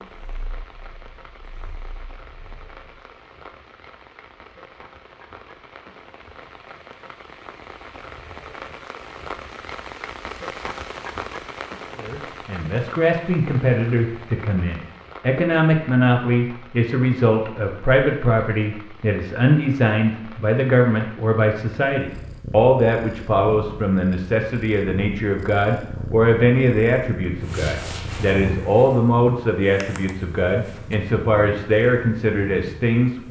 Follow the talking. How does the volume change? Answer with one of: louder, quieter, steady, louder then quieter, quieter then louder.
steady.